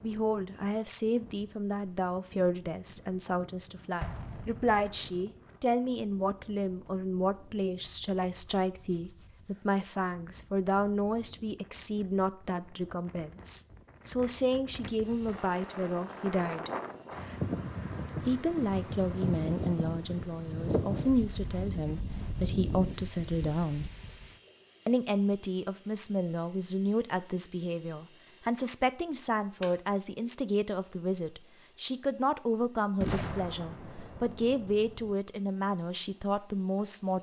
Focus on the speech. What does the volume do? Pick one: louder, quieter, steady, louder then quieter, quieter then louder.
steady.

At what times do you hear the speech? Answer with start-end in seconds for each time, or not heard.
0.0-16.7, 18.2-23.9, 24.9-37.1.